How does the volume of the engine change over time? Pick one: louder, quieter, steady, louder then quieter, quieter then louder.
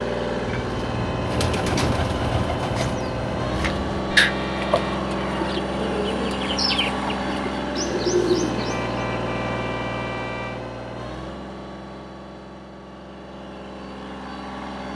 quieter.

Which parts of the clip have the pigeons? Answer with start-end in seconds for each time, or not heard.
0.5-9.0.